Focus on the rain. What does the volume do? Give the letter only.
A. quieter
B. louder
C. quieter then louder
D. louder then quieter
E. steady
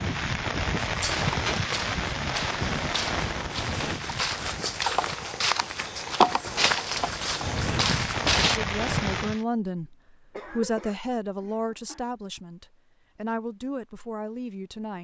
C.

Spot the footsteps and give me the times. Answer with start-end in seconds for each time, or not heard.
1.0-8.6.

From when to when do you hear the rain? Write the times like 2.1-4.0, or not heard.
0.0-9.4.